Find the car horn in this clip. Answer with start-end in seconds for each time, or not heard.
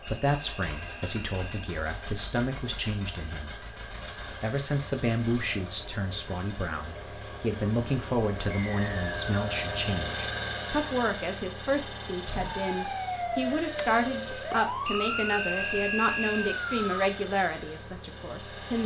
not heard.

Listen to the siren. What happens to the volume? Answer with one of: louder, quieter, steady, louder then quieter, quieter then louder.
steady.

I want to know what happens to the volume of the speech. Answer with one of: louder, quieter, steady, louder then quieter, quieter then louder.
steady.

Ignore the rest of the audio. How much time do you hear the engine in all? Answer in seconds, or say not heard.
19 s.